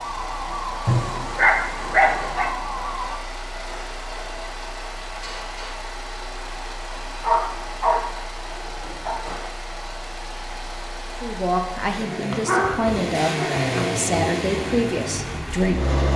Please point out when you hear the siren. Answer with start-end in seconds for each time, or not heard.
0.0-3.2.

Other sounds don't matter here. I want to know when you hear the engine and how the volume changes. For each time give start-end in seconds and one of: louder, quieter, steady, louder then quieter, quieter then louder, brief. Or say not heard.
0.0-16.1 louder.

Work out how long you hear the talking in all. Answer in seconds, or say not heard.
5 s.